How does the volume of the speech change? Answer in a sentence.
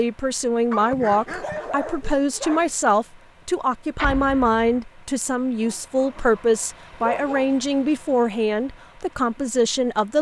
The loudness of the speech stays about the same.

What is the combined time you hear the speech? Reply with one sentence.
You can hear the speech for 10 seconds altogether.